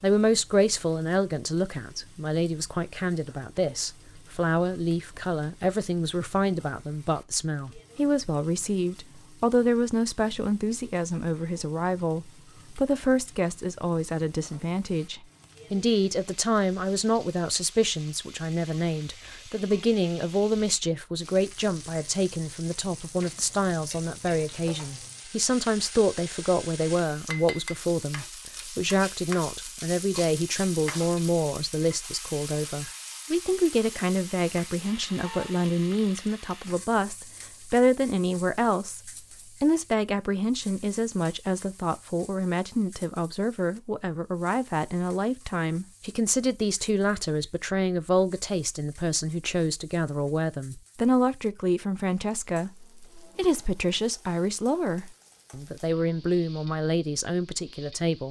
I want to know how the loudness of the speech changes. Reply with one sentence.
The loudness of the speech stays about the same.